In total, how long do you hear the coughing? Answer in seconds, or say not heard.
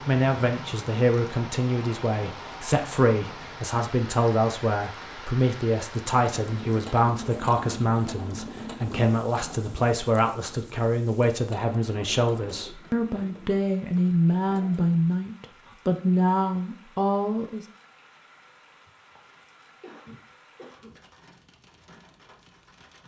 2 s.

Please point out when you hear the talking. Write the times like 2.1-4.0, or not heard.
0.1-17.6.